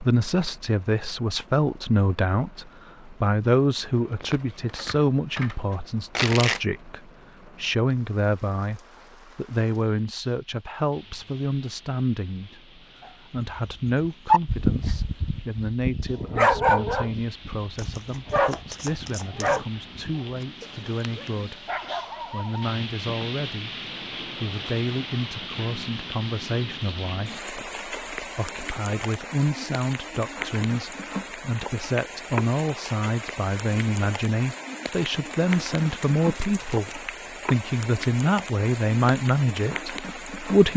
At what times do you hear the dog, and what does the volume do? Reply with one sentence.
The dog can be heard from 13.8 to 23.3 s, getting quieter.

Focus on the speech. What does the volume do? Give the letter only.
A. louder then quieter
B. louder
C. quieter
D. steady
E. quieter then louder
E.